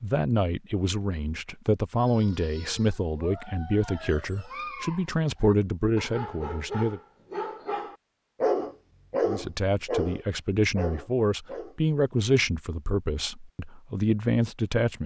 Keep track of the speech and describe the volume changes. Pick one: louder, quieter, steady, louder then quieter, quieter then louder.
steady.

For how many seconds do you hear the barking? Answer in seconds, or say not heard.
10 s.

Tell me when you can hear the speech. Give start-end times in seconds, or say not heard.
0.0-7.0, 9.2-15.0.